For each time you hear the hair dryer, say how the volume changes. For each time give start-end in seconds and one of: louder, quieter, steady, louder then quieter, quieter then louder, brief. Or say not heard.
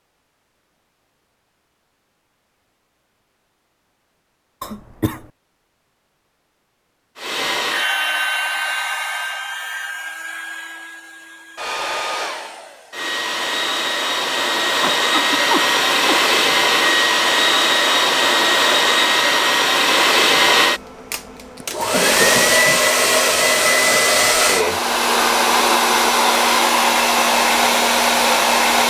7.2-28.8 louder.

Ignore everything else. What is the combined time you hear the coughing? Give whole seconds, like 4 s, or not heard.
3 s.